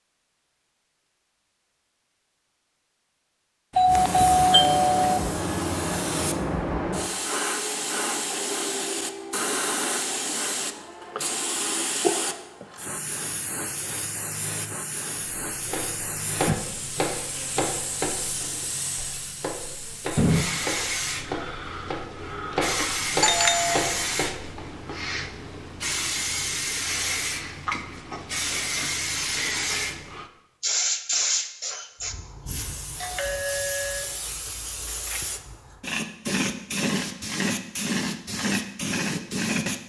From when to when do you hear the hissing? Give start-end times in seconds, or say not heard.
3.9-39.8.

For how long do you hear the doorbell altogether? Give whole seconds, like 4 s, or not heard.
4 s.